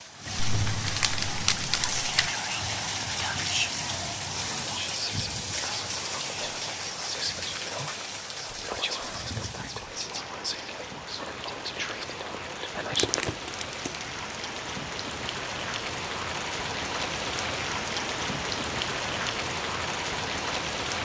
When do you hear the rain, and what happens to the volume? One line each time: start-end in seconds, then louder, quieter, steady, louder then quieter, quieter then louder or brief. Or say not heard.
0.0-20.9 quieter then louder.